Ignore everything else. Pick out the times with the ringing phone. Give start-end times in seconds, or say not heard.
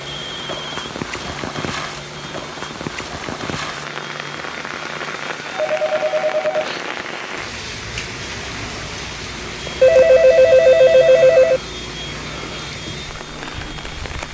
0.1-0.8, 5.5-6.8, 9.8-11.6.